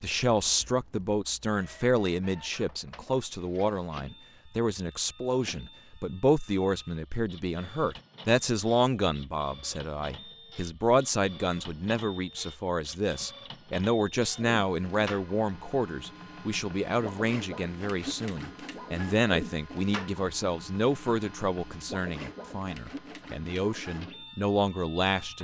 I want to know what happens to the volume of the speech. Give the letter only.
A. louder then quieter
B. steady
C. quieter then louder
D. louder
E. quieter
B.